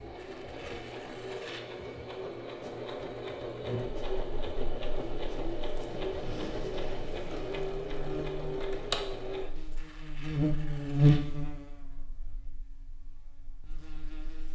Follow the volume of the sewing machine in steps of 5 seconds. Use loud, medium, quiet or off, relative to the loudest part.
loud, loud, off.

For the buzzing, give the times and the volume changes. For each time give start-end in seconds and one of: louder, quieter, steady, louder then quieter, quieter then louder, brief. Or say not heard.
3.6-14.4 louder then quieter.